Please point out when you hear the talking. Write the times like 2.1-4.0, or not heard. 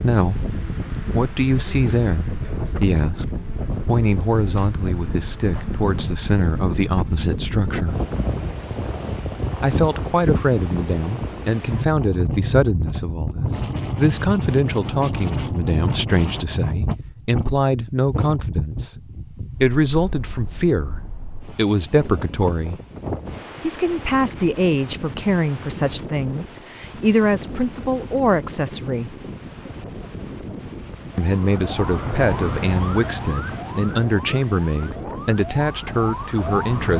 0.0-8.0, 9.6-22.8, 23.6-29.1, 31.1-36.9.